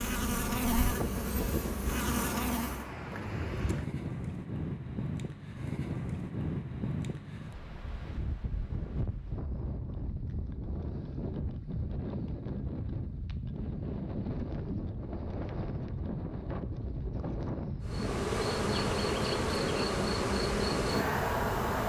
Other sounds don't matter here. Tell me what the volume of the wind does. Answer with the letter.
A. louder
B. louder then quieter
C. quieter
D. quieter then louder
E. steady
E.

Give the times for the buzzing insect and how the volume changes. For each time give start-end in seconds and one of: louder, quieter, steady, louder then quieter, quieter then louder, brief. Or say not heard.
0.0-2.9 brief
17.8-21.8 steady.